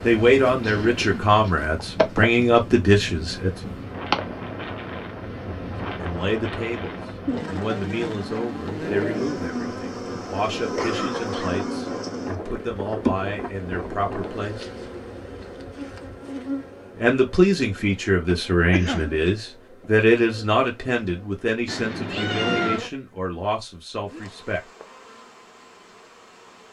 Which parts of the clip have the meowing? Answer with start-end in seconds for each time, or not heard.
21.6-22.8.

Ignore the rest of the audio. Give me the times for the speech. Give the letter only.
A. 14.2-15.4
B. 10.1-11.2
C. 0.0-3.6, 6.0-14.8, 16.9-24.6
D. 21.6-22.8
C.